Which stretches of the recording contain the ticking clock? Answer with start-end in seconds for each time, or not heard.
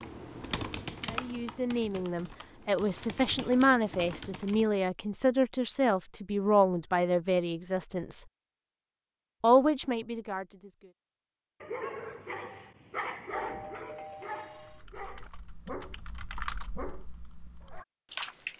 not heard.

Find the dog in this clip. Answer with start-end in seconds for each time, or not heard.
11.6-17.9.